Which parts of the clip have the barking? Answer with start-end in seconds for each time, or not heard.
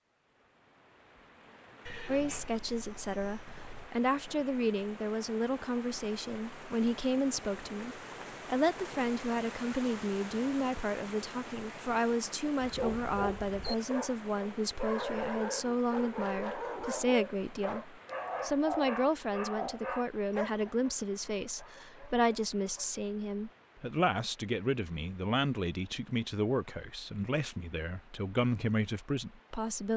12.6-23.0.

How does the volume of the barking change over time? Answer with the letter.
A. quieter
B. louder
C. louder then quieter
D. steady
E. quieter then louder
A.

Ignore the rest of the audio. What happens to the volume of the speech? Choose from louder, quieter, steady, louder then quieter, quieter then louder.
steady.